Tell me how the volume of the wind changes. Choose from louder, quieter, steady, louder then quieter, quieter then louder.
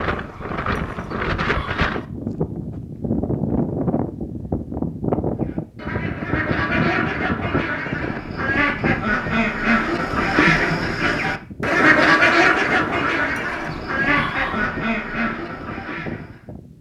quieter.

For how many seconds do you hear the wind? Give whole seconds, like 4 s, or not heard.
17 s.